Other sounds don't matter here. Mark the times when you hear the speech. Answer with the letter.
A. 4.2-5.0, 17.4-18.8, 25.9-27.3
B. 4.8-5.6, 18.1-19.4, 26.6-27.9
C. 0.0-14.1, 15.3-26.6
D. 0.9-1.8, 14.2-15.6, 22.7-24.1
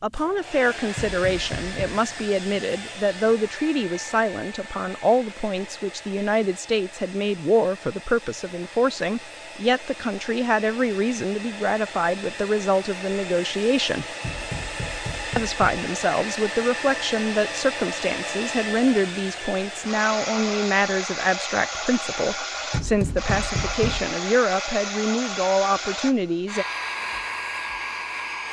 C.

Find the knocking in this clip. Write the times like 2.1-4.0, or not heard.
0.9-1.8, 14.2-15.6, 22.7-24.1.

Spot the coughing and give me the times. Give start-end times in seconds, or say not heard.
not heard.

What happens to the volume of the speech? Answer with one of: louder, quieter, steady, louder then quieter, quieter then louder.
steady.